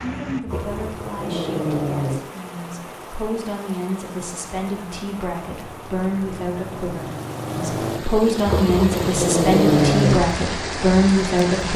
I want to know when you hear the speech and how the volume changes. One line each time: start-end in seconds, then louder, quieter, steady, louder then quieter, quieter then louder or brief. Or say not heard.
0.0-11.7 louder.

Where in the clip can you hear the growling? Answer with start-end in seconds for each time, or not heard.
0.5-2.2, 8.4-10.2.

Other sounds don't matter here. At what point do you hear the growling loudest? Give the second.
10 s.